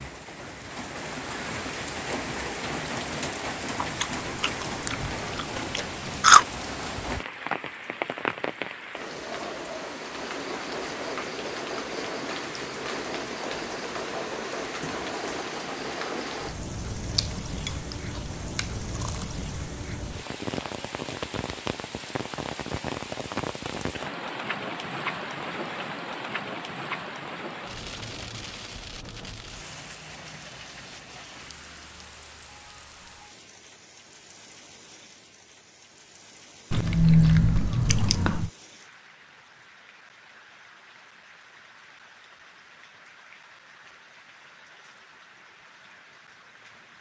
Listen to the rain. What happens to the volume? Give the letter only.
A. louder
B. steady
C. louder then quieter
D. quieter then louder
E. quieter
E.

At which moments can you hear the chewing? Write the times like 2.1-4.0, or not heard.
3.8-6.5, 17.1-19.2, 36.7-38.5.